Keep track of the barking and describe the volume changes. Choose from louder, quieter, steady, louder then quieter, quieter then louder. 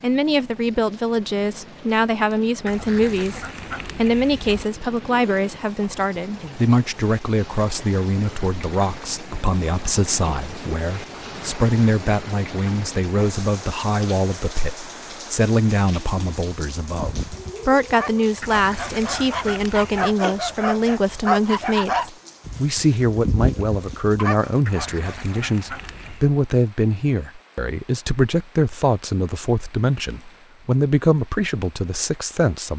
louder.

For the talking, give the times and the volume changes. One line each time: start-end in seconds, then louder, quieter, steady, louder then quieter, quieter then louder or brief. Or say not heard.
0.0-32.7 steady.